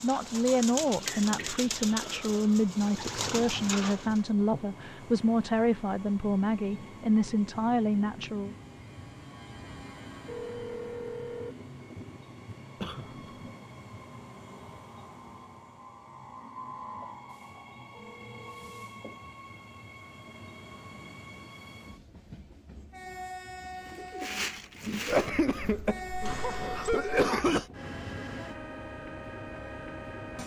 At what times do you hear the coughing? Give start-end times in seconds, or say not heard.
1.1-2.6, 12.8-13.4, 25.1-27.7.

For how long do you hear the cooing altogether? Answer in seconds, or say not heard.
6 s.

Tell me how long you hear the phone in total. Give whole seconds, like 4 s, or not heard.
2 s.